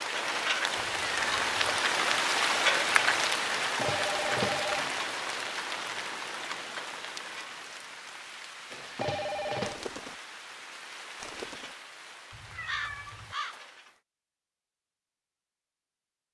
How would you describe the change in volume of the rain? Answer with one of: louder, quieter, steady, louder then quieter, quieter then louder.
quieter.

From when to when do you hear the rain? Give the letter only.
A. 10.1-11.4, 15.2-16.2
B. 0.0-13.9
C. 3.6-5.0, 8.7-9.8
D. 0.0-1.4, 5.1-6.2
B.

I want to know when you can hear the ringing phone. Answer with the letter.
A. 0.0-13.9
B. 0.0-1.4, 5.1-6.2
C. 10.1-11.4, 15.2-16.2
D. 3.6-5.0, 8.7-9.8
D.